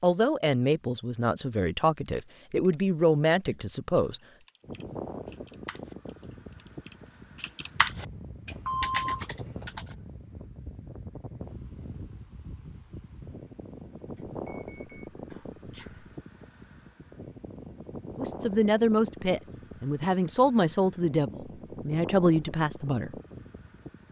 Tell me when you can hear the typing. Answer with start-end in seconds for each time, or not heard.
2.0-9.9.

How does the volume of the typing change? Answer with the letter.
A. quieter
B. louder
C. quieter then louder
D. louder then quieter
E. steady
C.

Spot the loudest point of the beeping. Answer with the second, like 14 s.
9 s.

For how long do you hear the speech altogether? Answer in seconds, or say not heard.
9 s.